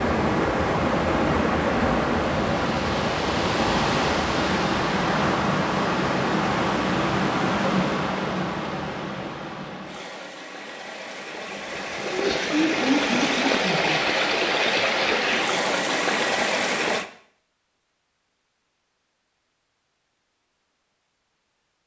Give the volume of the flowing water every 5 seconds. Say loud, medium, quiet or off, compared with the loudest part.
loud, loud, loud, loud, off.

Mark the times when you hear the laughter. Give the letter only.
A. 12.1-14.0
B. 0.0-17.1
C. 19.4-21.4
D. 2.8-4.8
A.